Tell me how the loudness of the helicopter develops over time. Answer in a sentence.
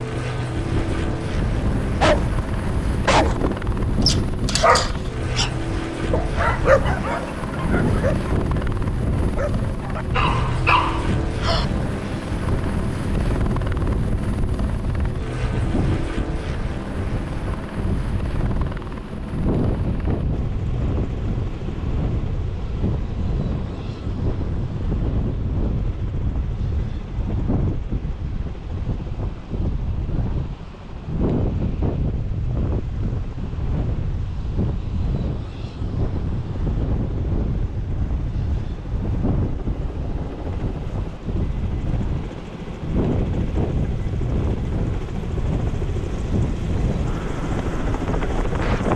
The volume of the helicopter goes down, then up.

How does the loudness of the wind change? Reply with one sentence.
The volume of the wind stays about the same.